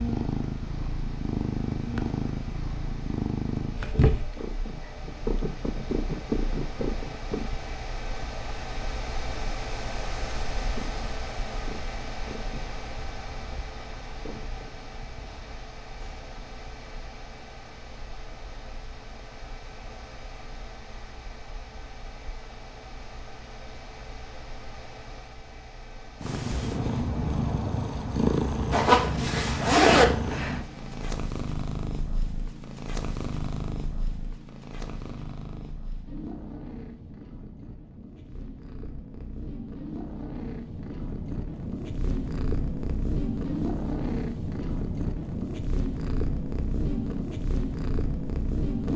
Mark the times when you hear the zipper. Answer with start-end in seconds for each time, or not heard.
28.7-30.1.